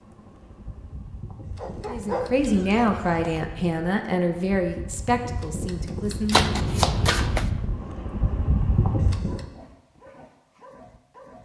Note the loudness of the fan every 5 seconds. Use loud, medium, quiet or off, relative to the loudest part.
quiet, loud, off.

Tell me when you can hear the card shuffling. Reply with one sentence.
You can hear the card shuffling from 6.3 to 7.5 s.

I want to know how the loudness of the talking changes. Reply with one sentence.
The volume of the talking goes down.